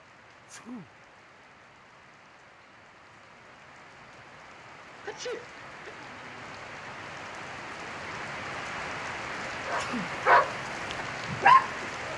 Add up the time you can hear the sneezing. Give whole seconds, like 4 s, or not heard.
2 s.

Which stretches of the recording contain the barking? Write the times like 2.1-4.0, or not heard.
9.7-11.8.